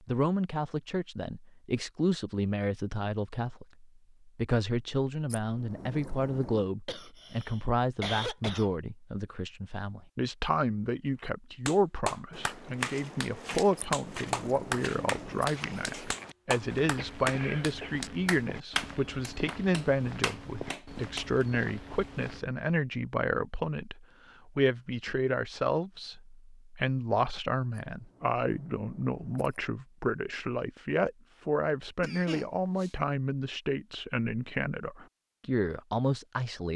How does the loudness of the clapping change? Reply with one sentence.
The loudness of the clapping goes down.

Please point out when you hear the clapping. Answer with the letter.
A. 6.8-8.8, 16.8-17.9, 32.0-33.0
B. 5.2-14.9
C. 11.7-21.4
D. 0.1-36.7
C.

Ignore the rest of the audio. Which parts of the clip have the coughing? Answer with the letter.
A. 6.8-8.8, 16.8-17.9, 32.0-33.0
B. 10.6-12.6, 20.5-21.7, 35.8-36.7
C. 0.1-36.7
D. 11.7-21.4
A.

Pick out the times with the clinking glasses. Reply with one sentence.
The clinking glasses can't be heard in this clip.